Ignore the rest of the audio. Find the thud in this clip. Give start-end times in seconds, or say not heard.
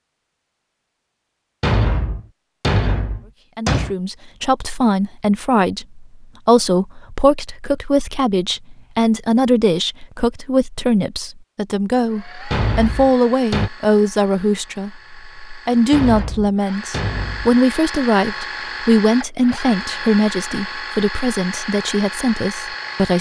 1.6-4.0, 12.5-13.7, 15.9-18.0.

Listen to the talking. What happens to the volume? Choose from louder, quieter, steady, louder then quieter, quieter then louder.
steady.